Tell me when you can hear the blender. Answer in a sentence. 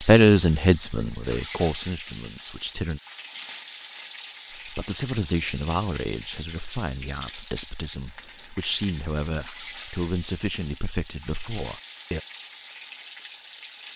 You can't hear the blender here.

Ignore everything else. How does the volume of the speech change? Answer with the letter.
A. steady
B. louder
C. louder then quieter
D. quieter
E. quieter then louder
D.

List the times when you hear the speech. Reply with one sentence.
You can hear the speech from 0.0 to 3.0 s and from 4.5 to 12.2 s.